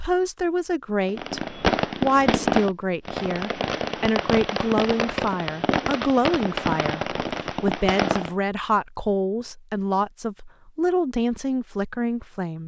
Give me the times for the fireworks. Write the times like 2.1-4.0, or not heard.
1.1-8.3.